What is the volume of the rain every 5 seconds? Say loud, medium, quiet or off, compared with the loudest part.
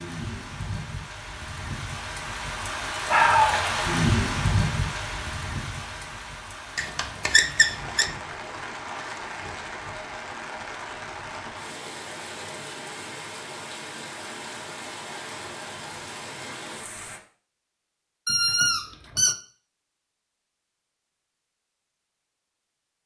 loud, medium, medium, medium, off.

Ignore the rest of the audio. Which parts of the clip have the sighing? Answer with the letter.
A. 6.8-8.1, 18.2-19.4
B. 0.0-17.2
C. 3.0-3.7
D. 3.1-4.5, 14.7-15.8
C.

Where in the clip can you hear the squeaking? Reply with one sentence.
The squeaking can be heard from 6.8 to 8.1 s and from 18.2 to 19.4 s.